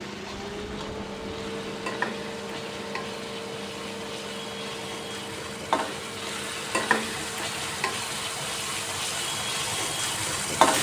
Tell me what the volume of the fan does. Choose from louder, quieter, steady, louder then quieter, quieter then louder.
quieter.